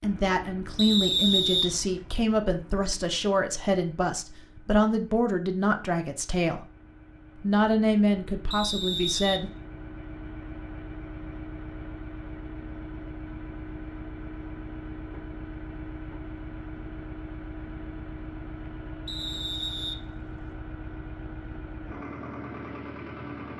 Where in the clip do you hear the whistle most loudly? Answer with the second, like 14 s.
1 s.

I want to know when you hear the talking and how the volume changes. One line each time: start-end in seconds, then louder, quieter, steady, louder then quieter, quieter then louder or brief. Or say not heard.
0.0-6.7 steady
7.4-9.5 brief.